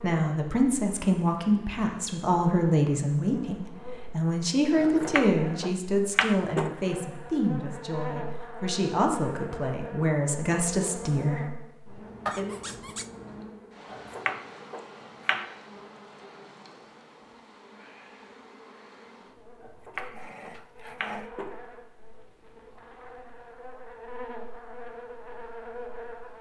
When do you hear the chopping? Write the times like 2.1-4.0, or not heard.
4.8-6.8, 13.9-15.5, 19.6-21.6.